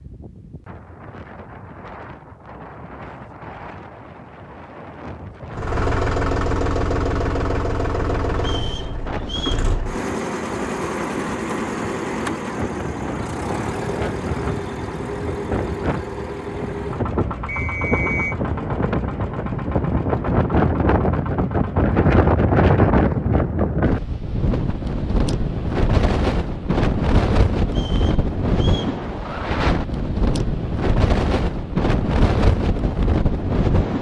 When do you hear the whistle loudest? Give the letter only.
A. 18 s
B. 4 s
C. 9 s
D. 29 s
A.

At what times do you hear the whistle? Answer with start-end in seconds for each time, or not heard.
8.4-9.7, 17.4-18.4, 27.7-28.9.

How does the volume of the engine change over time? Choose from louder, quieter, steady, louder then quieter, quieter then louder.
quieter.